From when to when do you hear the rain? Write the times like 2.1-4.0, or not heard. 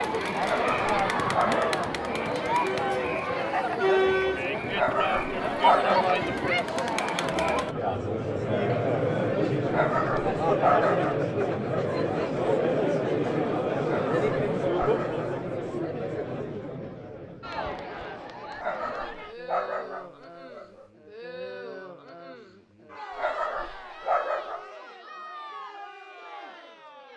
not heard.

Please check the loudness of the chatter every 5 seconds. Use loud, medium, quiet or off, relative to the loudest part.
loud, loud, loud, medium, quiet, quiet.